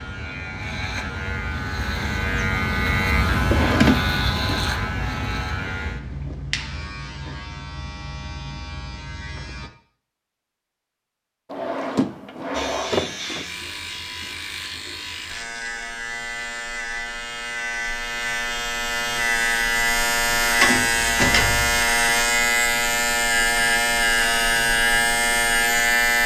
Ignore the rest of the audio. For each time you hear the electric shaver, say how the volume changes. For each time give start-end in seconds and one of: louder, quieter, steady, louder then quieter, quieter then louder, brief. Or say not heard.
0.0-9.7 louder then quieter
12.5-26.2 louder.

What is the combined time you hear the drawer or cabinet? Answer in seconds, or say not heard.
4 s.